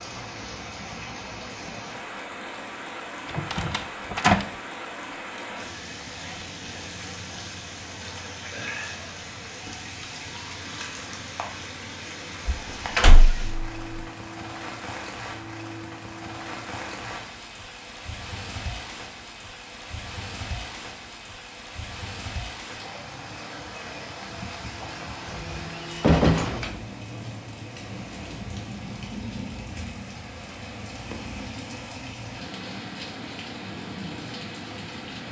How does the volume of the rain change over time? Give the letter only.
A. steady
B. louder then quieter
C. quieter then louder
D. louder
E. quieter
A.